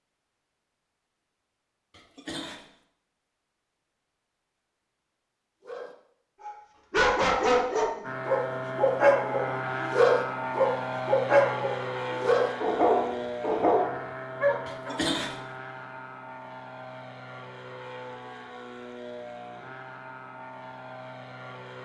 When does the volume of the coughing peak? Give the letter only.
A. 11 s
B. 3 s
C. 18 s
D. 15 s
D.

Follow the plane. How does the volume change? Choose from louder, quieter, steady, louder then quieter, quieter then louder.
quieter.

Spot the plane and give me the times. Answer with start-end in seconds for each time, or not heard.
8.0-21.8.